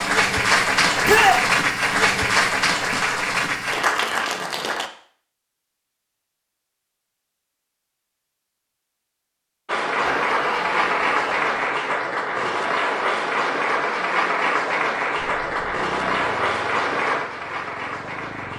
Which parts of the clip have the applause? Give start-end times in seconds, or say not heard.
0.0-4.9, 9.7-18.5.